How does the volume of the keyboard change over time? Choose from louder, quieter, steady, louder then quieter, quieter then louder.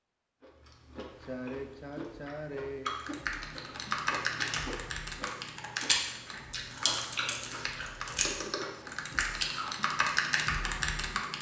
quieter then louder.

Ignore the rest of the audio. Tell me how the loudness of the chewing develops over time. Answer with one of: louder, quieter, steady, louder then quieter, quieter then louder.
louder.